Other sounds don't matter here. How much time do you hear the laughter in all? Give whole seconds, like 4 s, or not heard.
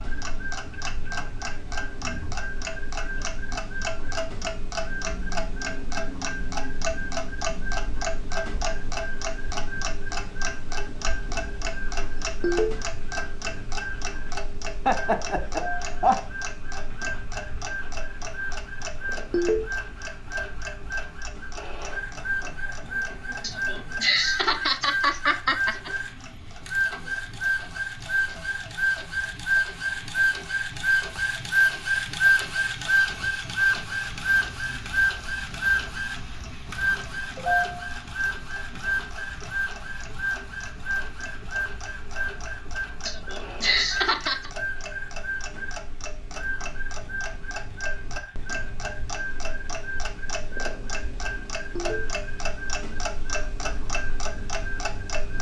5 s.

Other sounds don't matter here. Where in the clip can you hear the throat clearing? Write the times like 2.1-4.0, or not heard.
not heard.